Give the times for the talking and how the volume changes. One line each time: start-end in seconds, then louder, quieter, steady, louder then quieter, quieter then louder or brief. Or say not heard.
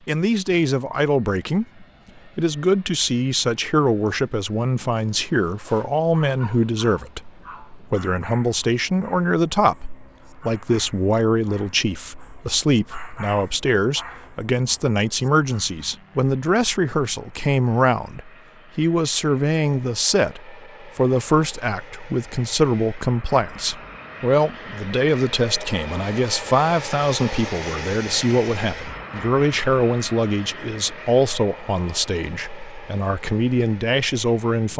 0.1-34.7 steady.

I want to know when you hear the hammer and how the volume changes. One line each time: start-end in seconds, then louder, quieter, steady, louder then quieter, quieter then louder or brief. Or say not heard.
not heard.